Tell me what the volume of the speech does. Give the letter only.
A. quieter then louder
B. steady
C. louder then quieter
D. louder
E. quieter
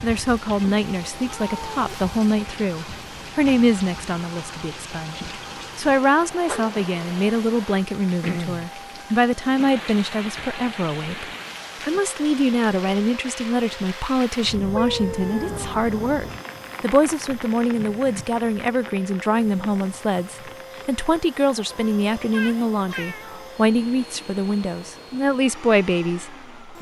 B.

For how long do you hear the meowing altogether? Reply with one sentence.
You can hear the meowing for 4 seconds altogether.